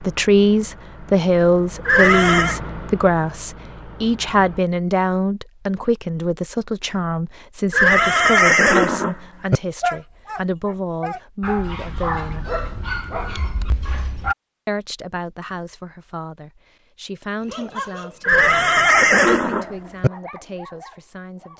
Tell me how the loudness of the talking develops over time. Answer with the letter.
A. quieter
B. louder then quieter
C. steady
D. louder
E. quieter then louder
A.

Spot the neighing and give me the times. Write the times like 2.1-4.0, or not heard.
1.9-2.6, 7.7-9.6, 18.2-20.1.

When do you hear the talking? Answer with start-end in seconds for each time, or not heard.
0.0-12.4, 14.7-21.5.